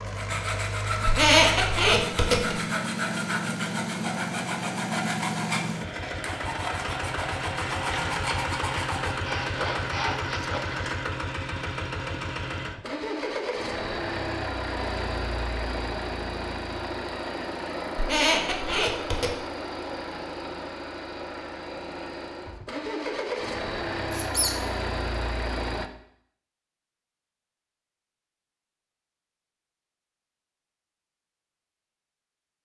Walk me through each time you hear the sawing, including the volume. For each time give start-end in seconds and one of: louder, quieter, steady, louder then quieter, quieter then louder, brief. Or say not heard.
0.1-10.9 steady.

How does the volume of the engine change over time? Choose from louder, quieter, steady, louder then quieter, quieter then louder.
steady.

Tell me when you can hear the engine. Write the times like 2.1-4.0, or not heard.
0.0-25.9.